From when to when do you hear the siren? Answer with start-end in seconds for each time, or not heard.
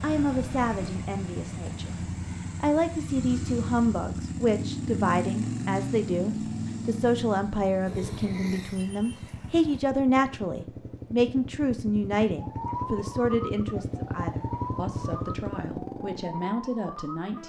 12.3-17.4.